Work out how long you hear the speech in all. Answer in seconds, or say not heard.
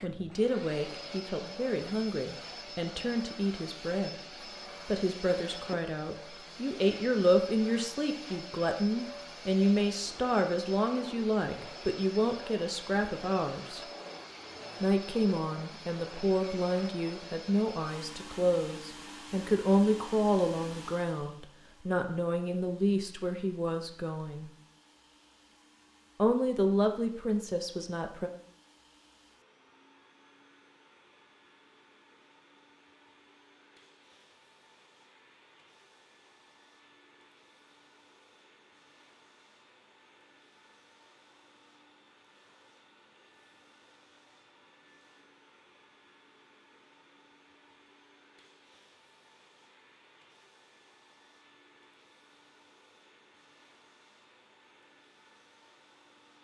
25 s.